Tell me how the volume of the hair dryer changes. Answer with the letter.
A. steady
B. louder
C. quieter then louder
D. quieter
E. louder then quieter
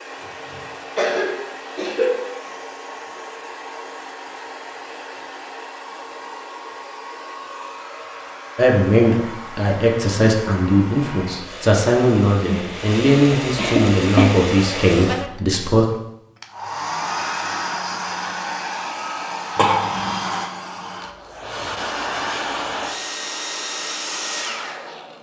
B.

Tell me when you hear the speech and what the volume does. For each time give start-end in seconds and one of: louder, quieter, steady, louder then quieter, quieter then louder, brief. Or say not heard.
8.6-15.8 steady.